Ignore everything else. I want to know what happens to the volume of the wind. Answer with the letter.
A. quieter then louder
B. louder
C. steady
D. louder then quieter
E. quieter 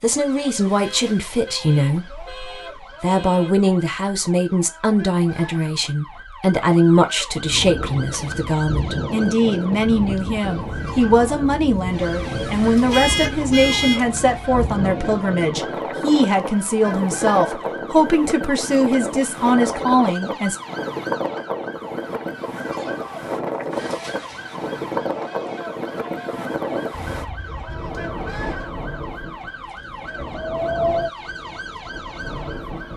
C.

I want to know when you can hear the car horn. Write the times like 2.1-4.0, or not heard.
0.8-3.5, 12.9-14.0, 27.1-28.1.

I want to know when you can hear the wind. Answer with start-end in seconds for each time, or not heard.
7.4-32.9.